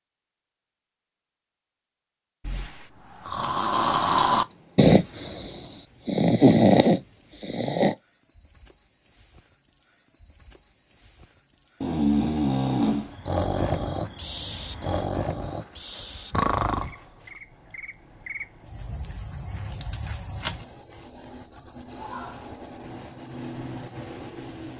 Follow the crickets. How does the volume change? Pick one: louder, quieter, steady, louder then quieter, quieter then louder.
louder.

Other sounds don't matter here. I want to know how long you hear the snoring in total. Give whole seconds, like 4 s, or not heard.
11 s.